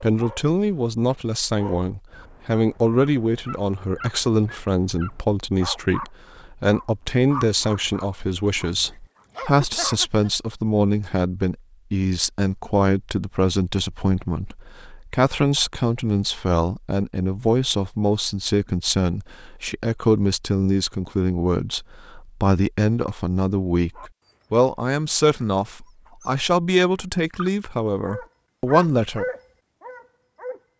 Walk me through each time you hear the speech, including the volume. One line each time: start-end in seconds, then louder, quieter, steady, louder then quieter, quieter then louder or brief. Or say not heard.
0.0-29.2 steady.